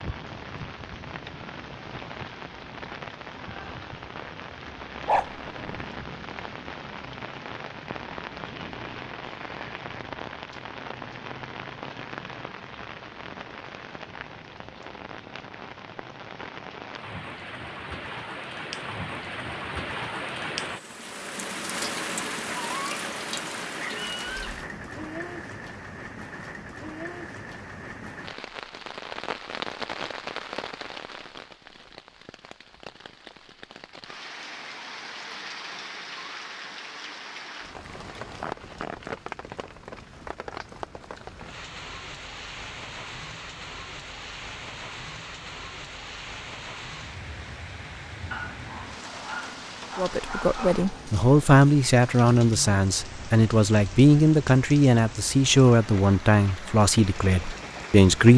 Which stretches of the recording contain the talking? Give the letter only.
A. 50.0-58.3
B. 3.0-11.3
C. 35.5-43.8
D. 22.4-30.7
A.